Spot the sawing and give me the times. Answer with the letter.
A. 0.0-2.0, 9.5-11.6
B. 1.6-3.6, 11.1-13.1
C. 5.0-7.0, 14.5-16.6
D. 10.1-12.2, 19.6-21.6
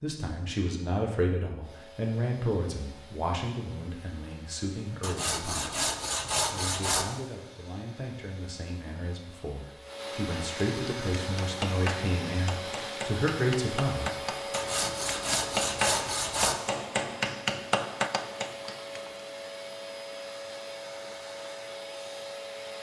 C.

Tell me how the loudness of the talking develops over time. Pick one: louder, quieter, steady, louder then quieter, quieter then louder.
quieter then louder.